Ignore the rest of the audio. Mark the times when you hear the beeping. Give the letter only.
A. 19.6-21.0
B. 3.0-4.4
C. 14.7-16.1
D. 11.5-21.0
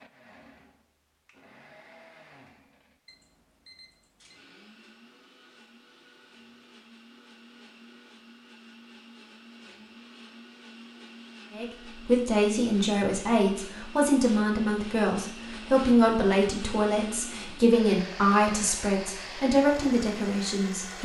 B.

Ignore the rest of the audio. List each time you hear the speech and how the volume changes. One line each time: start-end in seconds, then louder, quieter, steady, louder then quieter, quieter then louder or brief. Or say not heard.
11.5-21.0 steady.